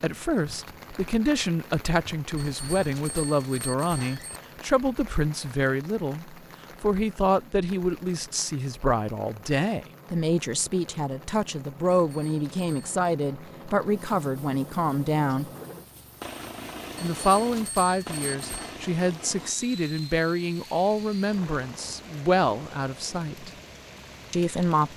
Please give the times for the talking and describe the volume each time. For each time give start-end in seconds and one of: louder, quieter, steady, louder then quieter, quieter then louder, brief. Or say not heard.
0.0-15.5 steady
17.0-23.5 steady
24.3-24.9 brief.